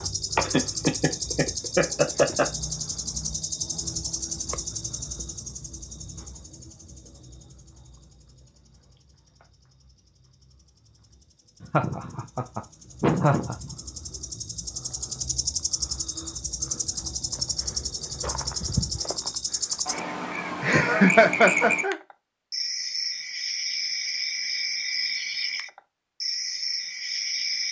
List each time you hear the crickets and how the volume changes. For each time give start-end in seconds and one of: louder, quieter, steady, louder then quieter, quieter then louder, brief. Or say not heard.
0.0-27.6 quieter then louder.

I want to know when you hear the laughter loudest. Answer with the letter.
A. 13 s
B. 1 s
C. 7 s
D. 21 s
D.